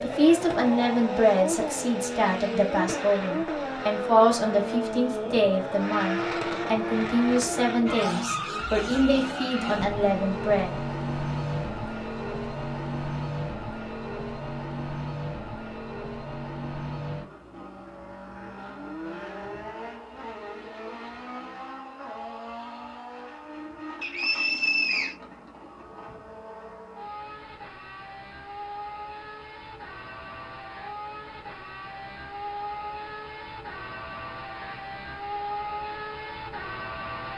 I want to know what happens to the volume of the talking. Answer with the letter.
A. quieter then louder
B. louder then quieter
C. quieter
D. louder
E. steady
E.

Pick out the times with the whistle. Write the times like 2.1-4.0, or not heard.
24.0-25.1.